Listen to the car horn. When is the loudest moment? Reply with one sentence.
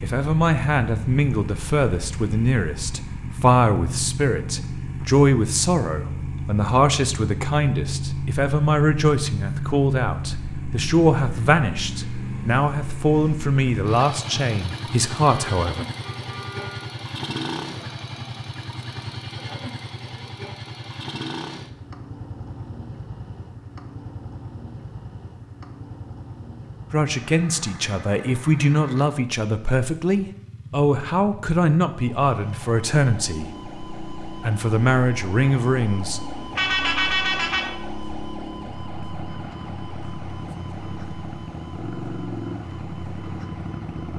The volume of the car horn peaks at 37 seconds.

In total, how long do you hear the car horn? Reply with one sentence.
The car horn can be heard for 3 seconds in total.